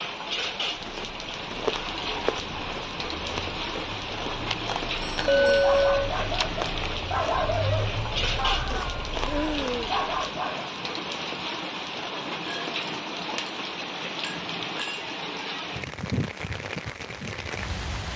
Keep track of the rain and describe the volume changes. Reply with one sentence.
The loudness of the rain stays about the same.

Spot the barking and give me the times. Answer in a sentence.
The barking can be heard from 5.4 to 10.8 s.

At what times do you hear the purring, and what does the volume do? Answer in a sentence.
You can't hear the purring here.